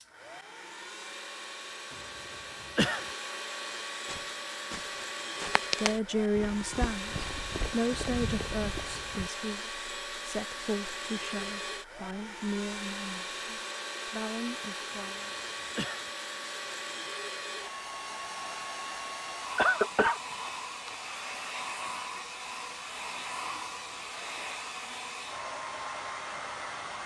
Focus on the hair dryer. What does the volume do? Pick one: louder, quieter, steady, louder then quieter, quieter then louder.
steady.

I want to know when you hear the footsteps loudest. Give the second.
6 s.